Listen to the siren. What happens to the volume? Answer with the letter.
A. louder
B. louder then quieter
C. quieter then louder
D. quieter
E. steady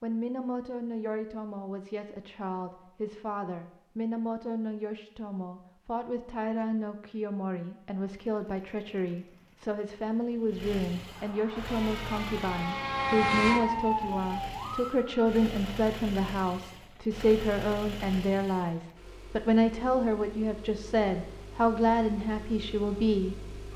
B.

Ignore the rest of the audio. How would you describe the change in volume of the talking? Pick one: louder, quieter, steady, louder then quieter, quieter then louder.
louder.